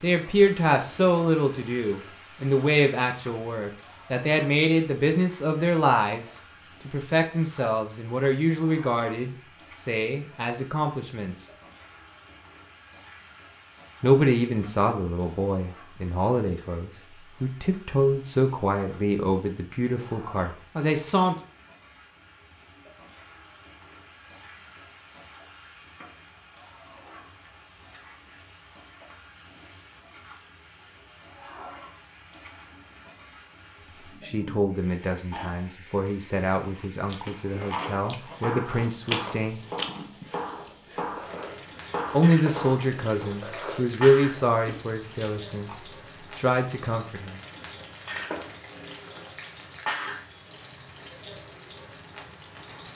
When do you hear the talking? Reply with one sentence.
You can hear the talking from 0.0 to 11.5 s, from 14.0 to 21.4 s, from 34.2 to 39.6 s and from 42.1 to 47.4 s.